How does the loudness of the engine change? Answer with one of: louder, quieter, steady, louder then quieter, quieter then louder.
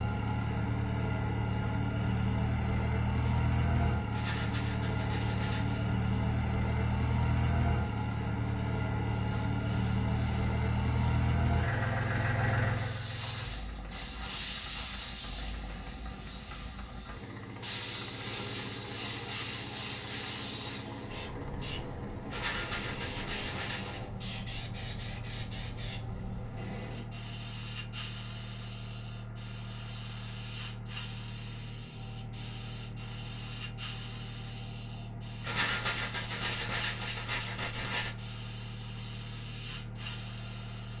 quieter.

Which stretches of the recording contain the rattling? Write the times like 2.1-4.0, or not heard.
4.1-5.8, 22.3-24.1, 35.4-38.1.